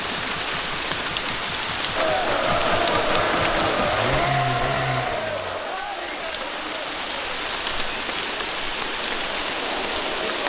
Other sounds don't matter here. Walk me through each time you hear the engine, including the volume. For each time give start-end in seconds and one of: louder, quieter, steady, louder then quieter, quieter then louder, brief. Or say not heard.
0.0-5.6 louder.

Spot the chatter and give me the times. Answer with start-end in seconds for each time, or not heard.
1.9-10.4.